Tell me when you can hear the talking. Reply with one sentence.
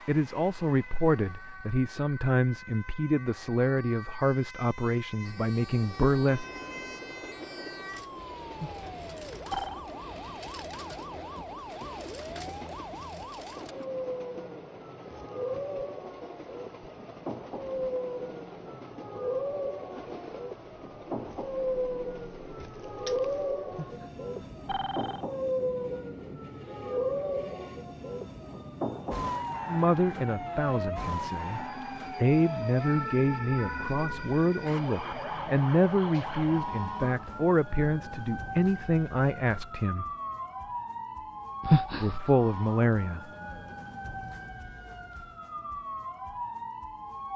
You can hear the talking from 0.1 to 6.5 s, from 29.6 to 40.0 s and from 42.0 to 43.2 s.